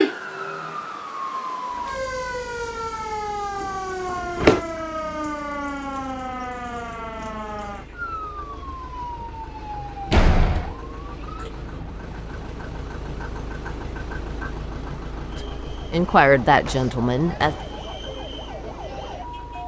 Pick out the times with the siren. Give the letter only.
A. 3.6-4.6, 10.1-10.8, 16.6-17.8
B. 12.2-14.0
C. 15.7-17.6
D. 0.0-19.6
D.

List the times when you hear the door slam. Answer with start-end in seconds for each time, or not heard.
3.6-4.6, 10.1-10.8, 16.6-17.8.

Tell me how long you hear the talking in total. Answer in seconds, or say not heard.
2 s.